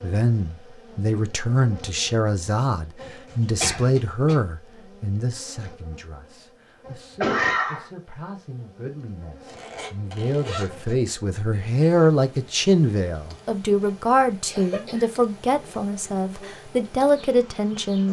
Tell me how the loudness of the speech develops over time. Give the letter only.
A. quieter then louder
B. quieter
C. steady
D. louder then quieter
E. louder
A.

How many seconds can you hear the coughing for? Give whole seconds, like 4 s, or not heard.
2 s.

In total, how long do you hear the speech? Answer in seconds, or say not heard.
18 s.